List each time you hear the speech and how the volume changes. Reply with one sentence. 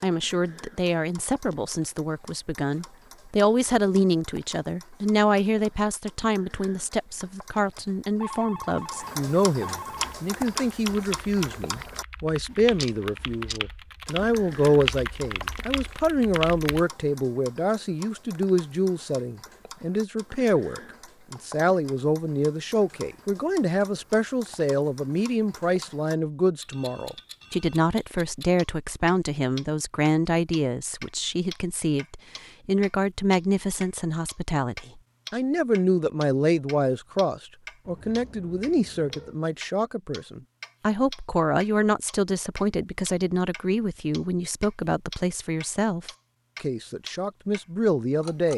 You can hear the speech from 0.0 to 48.5 s, at a steady volume.